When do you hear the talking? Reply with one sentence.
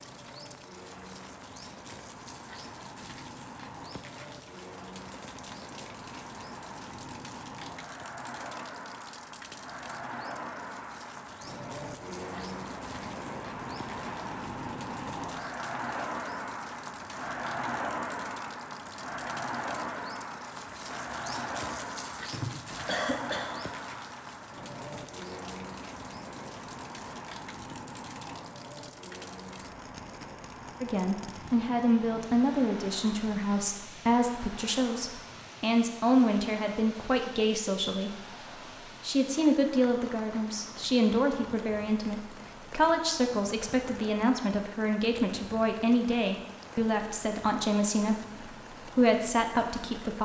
You can hear the talking from 30.8 to 38.2 s and from 39.0 to 50.2 s.